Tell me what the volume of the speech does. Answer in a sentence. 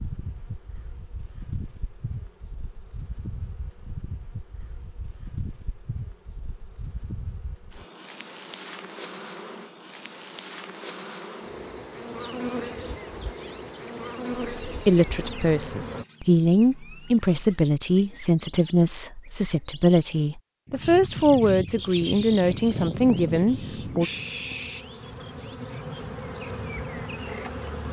The volume of the speech stays about the same.